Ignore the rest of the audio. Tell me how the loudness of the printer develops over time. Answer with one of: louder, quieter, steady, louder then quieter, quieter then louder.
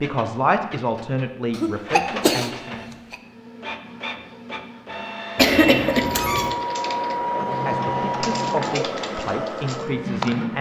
louder.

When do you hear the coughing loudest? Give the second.
6 s.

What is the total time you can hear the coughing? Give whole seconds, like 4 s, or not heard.
2 s.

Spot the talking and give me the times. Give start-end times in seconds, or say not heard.
0.0-2.8, 7.7-10.5.